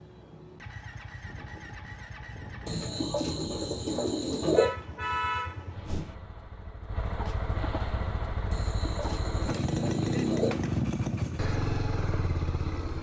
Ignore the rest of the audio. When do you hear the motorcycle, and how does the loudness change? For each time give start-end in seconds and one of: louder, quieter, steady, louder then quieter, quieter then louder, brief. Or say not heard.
0.0-12.9 louder.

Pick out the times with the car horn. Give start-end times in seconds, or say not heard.
4.5-6.2.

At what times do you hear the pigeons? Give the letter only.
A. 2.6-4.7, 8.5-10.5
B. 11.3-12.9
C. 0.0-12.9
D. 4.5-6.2
A.